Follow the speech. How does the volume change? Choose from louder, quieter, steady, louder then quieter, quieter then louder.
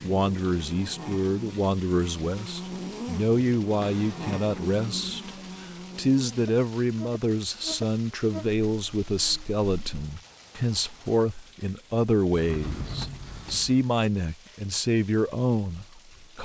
steady.